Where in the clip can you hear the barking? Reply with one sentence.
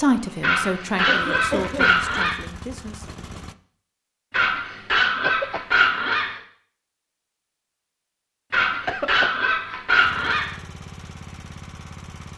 You can hear the barking from 0.4 to 2.4 s, from 4.3 to 6.4 s and from 8.5 to 10.6 s.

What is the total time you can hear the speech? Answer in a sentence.
The speech can be heard for 3 seconds in total.